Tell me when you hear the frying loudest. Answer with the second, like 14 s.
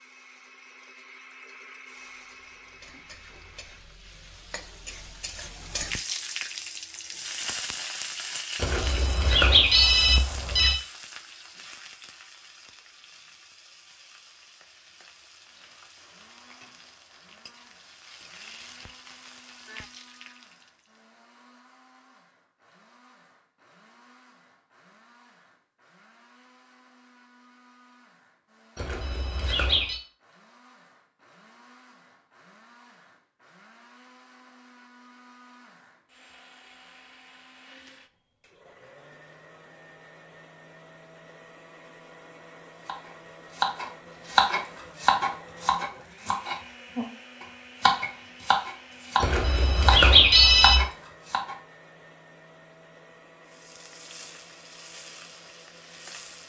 6 s.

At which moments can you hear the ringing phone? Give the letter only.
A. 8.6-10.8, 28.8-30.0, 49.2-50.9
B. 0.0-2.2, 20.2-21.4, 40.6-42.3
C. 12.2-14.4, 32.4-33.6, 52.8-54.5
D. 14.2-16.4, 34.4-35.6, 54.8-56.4
A.